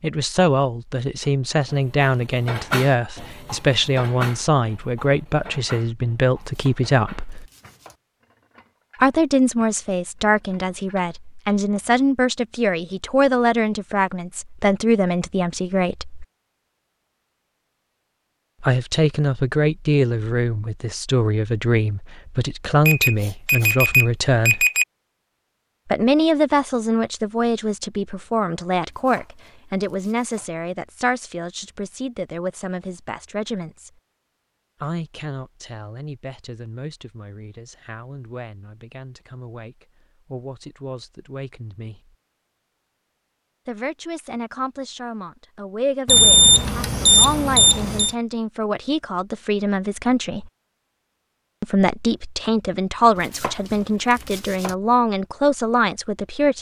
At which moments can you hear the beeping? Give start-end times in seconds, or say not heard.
22.9-24.9, 46.0-48.1.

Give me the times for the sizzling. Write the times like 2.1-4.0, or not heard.
not heard.